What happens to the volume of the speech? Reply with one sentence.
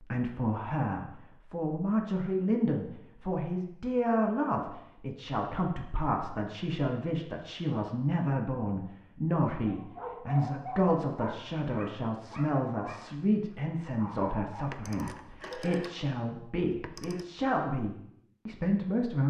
The loudness of the speech stays about the same.